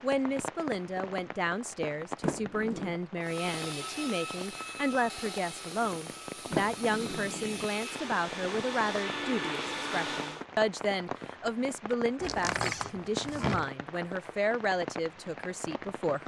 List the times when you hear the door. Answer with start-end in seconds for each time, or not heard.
2.2-3.0, 6.5-7.7, 12.2-13.7.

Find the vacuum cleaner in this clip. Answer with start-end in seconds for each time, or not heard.
3.2-10.4.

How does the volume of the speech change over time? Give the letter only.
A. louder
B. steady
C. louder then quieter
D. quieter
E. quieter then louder
B.